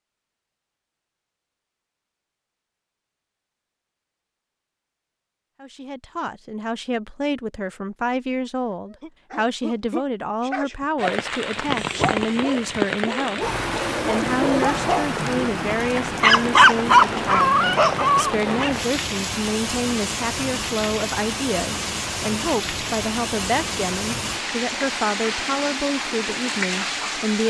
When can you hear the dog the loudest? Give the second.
17 s.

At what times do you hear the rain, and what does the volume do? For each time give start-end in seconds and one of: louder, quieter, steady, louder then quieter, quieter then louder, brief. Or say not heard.
10.9-27.4 steady.